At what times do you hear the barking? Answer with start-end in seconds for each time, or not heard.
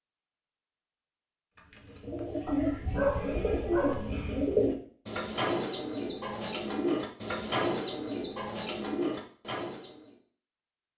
2.5-4.2.